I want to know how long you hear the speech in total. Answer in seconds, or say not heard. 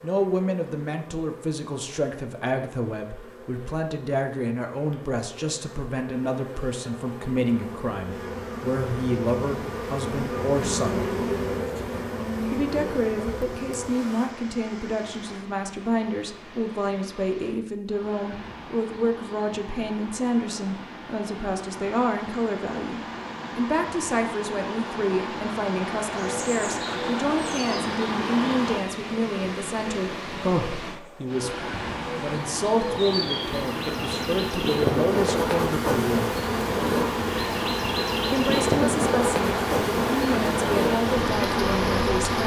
39 s.